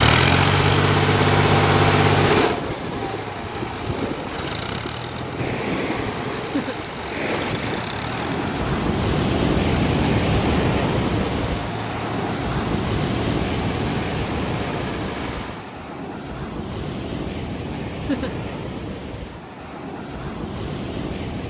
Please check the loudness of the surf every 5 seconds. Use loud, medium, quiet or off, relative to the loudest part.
medium, loud, loud, medium, medium.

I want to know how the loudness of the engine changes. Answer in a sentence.
The loudness of the engine goes down.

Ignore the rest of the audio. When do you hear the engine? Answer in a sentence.
You can hear the engine from 0.0 to 15.8 s.